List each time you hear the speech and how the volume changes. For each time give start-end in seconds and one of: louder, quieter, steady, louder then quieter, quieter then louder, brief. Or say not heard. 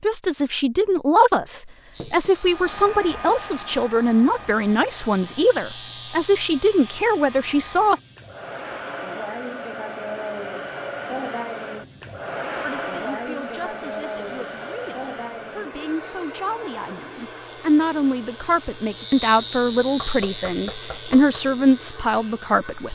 0.0-8.0 steady
12.6-22.9 louder.